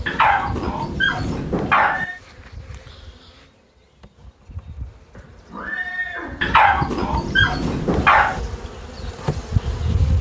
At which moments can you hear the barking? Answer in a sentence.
The barking can be heard from 0.1 to 2.0 s and from 6.4 to 8.4 s.